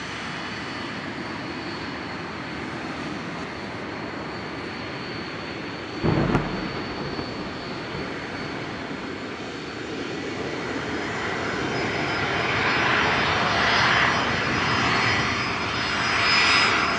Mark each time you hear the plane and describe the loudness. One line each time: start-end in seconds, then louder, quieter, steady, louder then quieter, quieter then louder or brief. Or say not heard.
0.0-16.9 louder.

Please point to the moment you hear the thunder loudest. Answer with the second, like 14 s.
6 s.